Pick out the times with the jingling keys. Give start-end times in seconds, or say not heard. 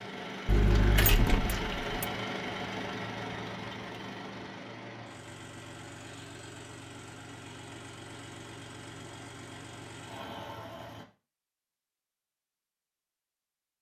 0.5-2.0.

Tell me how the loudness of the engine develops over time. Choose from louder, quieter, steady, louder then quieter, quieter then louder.
quieter.